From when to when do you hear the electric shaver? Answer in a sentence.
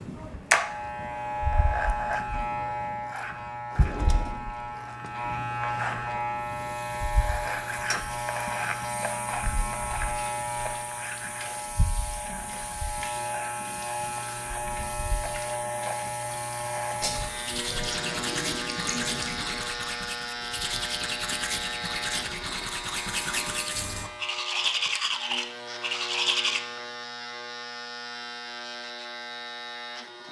The electric shaver can be heard from 0.0 to 30.2 s.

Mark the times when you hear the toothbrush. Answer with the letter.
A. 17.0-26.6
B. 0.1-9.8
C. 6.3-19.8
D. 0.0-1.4
A.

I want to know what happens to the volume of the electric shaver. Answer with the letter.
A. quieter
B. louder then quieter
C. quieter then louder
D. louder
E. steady
A.